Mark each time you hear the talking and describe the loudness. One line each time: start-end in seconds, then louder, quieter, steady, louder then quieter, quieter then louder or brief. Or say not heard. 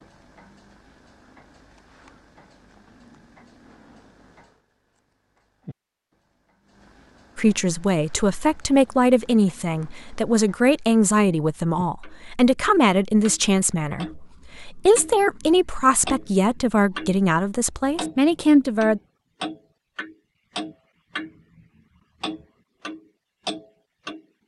7.3-19.0 steady.